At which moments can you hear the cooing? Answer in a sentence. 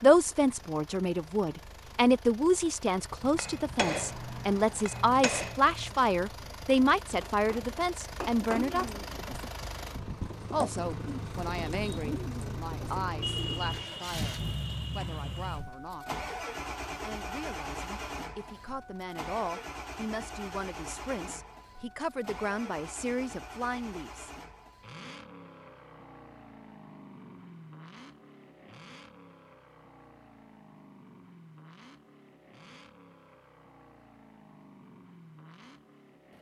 The cooing can be heard from 8.6 to 15.6 s.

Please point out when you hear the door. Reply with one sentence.
You can't hear the door here.